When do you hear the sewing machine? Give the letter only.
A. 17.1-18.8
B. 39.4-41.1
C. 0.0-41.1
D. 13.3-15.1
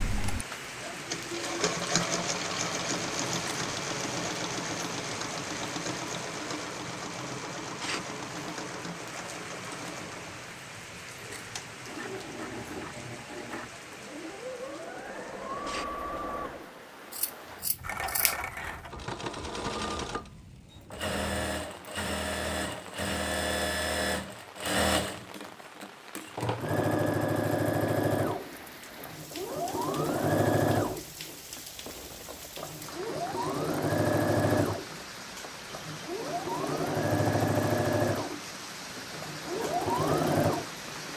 C.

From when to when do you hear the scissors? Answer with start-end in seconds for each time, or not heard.
17.1-18.8.